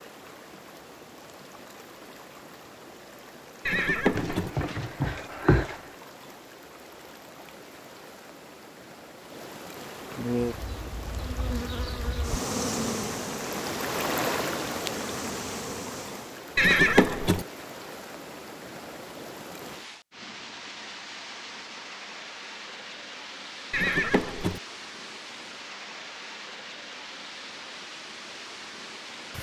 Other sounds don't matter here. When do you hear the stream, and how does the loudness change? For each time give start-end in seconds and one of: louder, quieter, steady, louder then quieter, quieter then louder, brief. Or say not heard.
0.0-29.3 louder then quieter.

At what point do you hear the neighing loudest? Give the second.
17 s.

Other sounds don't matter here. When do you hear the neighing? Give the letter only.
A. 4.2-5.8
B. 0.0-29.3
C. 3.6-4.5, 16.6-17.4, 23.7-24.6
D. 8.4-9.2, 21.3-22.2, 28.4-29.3
C.